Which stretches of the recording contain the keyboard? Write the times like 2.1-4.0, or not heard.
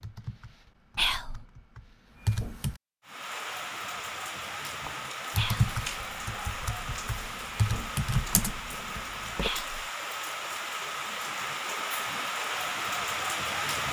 0.0-2.8, 4.8-9.5.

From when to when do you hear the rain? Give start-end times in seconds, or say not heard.
3.0-13.8.